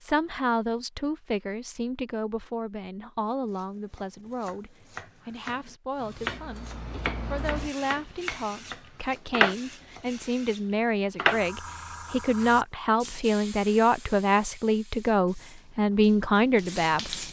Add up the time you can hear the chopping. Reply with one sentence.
You can hear the chopping for 7 seconds altogether.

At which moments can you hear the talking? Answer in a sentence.
The talking can be heard from 0.0 to 17.1 s.